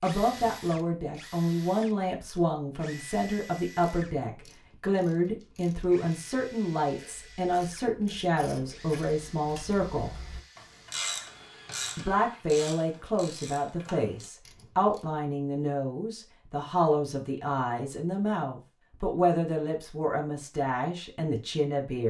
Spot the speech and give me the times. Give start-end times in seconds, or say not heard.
0.0-10.2, 11.9-22.0.